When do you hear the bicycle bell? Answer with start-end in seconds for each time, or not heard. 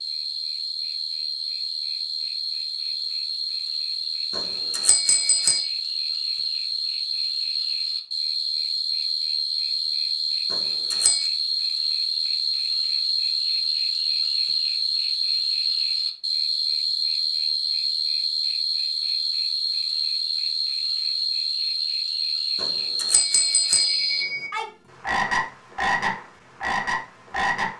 4.3-5.7, 10.5-11.3, 22.6-24.5.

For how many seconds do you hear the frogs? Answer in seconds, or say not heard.
28 s.